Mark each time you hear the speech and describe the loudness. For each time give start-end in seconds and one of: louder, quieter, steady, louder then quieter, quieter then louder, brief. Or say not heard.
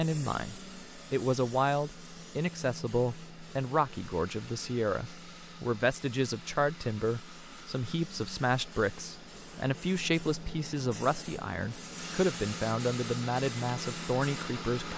0.0-14.9 steady.